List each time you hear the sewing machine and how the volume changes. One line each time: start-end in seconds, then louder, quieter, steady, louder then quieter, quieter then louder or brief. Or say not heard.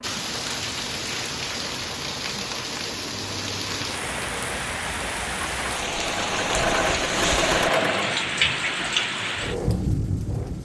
0.0-10.6 louder then quieter.